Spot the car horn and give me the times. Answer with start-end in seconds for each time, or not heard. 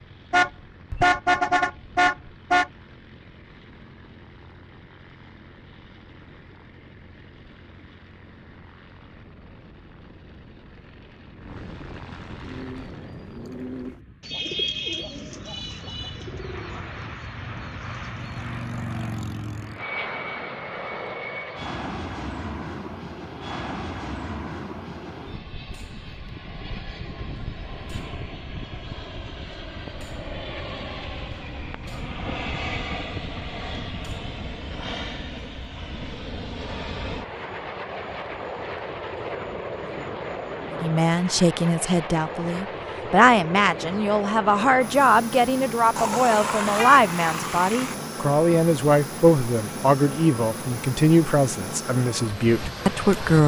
0.3-2.7, 46.0-48.0.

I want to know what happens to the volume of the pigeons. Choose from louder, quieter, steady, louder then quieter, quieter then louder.
louder then quieter.